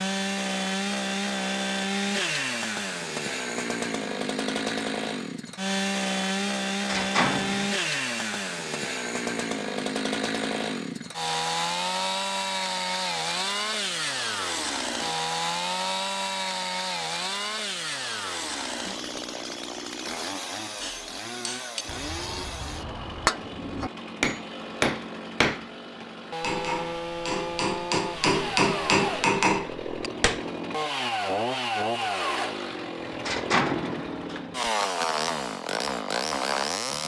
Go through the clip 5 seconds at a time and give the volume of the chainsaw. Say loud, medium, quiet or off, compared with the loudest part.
loud, loud, loud, loud, medium, medium, loud, loud.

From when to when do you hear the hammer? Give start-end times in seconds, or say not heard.
20.8-30.5.